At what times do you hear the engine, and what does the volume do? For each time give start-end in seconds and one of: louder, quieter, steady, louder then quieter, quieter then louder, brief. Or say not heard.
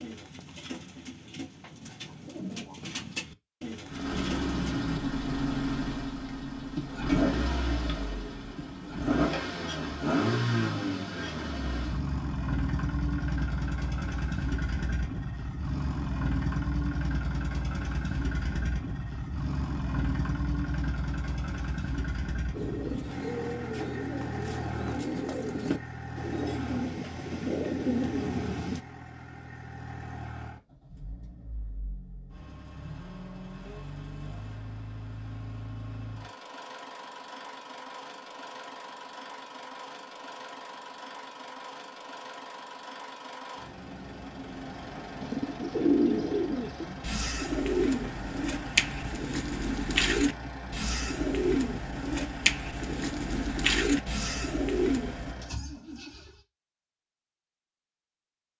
3.9-56.5 quieter.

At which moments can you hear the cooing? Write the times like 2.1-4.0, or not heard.
0.0-4.6, 22.5-28.8, 45.2-55.4.